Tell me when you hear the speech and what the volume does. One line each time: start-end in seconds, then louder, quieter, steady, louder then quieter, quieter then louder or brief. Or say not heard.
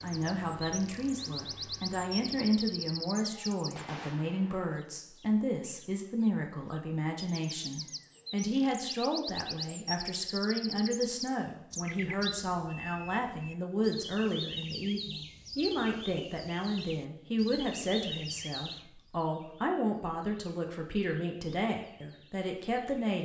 0.0-23.1 steady.